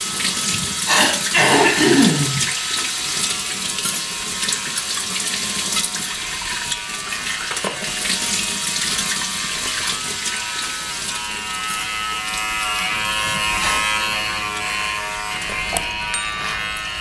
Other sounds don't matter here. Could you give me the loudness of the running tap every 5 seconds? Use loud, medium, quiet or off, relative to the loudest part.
loud, loud, medium, medium.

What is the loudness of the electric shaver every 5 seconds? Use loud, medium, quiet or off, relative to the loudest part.
medium, medium, loud, loud.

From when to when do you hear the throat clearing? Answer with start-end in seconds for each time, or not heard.
0.1-2.4, 13.1-13.8.